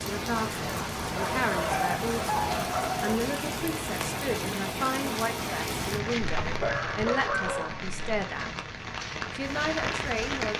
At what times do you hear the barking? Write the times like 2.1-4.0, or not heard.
1.1-3.1, 6.2-8.0.